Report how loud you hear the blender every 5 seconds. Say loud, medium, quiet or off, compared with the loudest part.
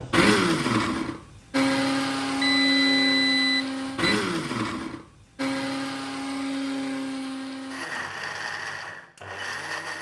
loud, medium.